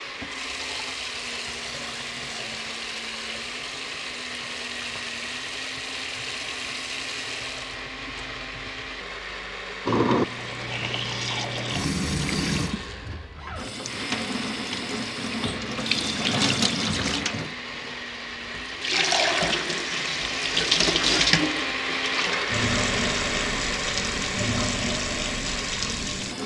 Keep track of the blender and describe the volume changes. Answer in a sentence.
The volume of the blender goes up.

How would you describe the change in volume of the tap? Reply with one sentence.
The volume of the tap goes up.